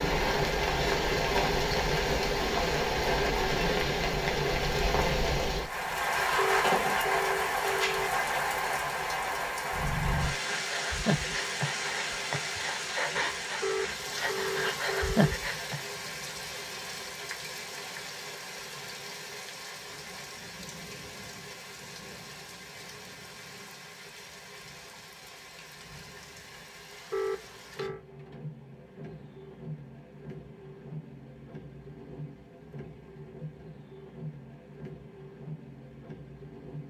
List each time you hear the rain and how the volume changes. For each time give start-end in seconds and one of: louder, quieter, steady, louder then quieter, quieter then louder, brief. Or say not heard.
0.0-36.8 quieter.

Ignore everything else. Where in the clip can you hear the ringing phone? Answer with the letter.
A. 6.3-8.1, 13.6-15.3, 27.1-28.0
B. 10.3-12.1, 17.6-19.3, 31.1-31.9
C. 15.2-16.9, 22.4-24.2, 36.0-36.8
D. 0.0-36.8
A.